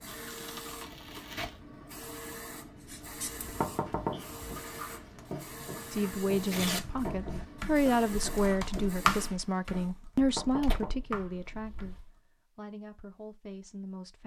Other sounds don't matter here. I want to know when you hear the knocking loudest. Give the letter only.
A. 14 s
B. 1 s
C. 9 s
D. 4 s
D.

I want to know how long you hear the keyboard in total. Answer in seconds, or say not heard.
5 s.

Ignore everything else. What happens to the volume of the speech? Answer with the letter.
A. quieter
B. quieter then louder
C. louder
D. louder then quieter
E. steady
A.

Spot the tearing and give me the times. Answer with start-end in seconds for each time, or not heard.
0.1-1.6, 5.2-7.0, 10.6-12.1.